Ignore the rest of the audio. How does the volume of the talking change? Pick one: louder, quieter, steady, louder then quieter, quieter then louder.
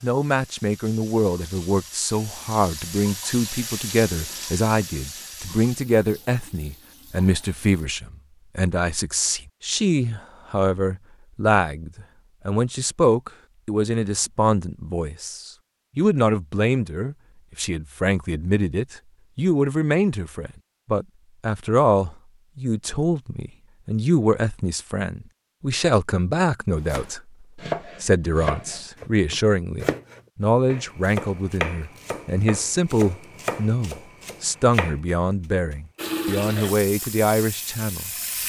steady.